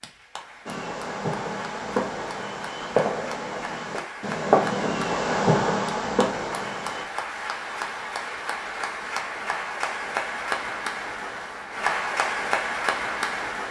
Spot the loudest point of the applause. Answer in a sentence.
The volume of the applause peaks at 12 seconds.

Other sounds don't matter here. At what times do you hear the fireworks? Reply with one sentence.
The fireworks can be heard from 0.7 to 7.0 s.